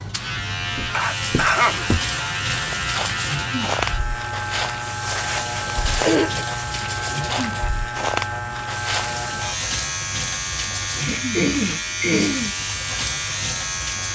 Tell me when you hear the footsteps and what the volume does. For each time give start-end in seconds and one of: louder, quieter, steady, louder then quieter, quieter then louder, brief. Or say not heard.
0.8-9.3 steady.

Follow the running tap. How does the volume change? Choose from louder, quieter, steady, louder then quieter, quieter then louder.
steady.